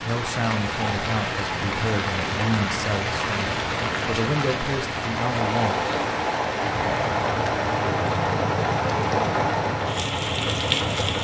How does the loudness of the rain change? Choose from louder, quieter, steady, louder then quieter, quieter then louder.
steady.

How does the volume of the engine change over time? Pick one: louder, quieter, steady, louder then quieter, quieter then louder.
steady.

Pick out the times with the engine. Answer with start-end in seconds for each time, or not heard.
6.5-11.1.